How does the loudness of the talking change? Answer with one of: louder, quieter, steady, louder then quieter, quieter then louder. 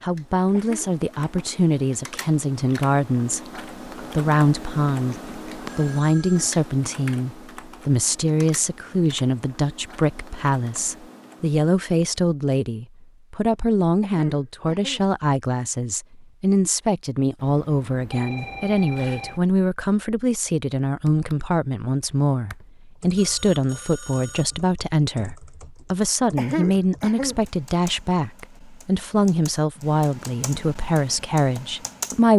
steady.